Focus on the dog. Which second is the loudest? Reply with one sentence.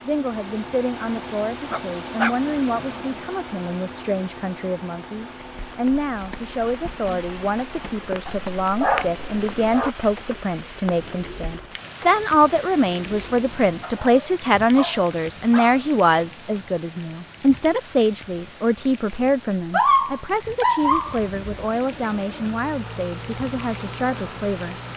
The volume of the dog peaks at 20 seconds.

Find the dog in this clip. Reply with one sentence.
You can hear the dog from 1.7 to 3.0 s, from 8.2 to 9.9 s, from 13.8 to 15.8 s and from 19.7 to 21.2 s.